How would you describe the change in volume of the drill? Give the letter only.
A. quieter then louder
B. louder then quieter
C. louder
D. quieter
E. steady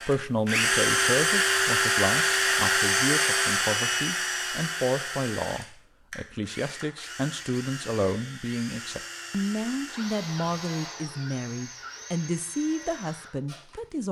D.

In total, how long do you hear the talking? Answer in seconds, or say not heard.
14 s.